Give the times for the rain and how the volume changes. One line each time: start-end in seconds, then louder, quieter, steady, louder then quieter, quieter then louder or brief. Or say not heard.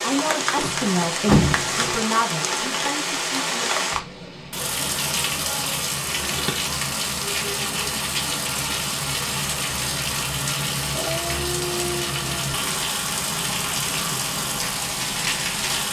0.0-15.8 steady.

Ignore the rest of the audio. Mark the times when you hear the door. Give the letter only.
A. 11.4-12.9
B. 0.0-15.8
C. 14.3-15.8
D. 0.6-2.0
D.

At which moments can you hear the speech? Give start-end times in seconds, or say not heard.
0.0-3.7.